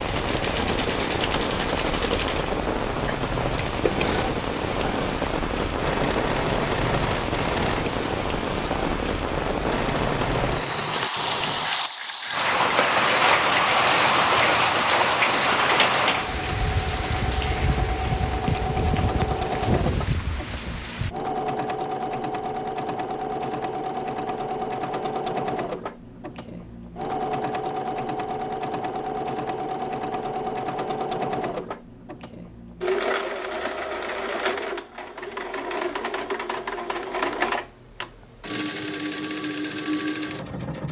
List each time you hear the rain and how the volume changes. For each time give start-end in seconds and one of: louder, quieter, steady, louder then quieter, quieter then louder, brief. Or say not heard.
0.0-21.1 louder then quieter.